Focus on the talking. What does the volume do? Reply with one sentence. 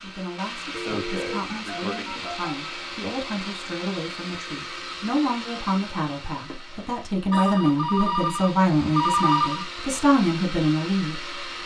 The volume of the talking goes up.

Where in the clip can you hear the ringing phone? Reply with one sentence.
You can hear the ringing phone from 0.7 to 2.8 s and from 7.3 to 9.7 s.